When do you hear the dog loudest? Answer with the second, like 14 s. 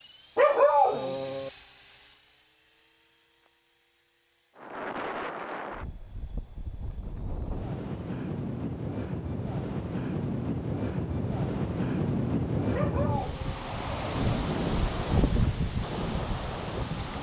1 s.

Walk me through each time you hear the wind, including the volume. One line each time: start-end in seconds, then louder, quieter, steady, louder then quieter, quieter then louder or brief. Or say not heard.
4.5-17.1 louder.